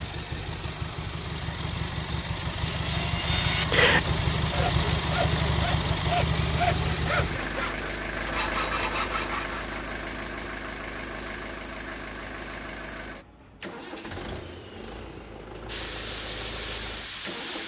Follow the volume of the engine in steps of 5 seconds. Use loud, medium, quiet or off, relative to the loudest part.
loud, loud, medium, medium.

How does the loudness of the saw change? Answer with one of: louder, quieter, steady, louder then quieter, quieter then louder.
quieter.